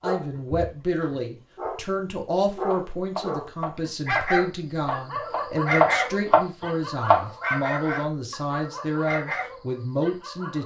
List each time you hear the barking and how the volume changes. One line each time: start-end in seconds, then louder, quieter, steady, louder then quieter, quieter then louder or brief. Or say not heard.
0.0-10.6 louder then quieter.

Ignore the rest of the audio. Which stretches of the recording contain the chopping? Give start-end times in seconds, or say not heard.
2.7-7.2.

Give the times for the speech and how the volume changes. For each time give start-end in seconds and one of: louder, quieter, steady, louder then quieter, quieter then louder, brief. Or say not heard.
0.0-10.6 steady.